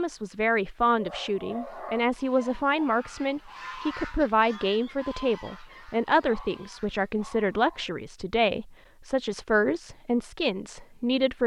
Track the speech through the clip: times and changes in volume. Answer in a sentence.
The speech can be heard from 0.0 to 11.4 s, at a steady volume.